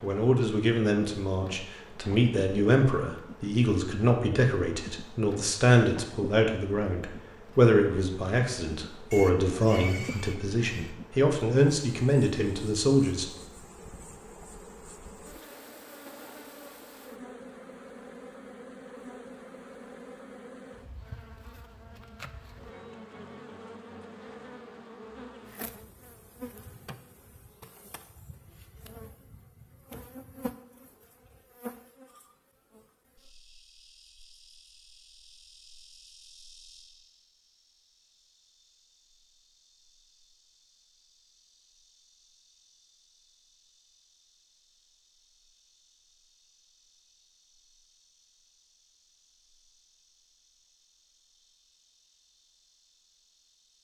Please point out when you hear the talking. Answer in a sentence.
You can hear the talking from 0.0 to 13.2 s.